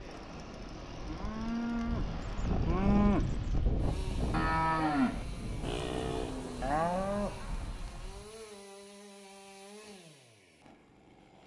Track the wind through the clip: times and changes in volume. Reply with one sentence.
You can hear the wind from 0.0 to 8.3 s, getting louder then quieter.